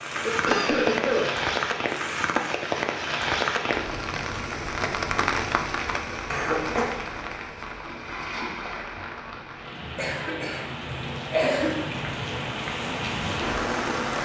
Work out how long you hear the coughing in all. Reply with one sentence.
The coughing can be heard for 3 seconds in total.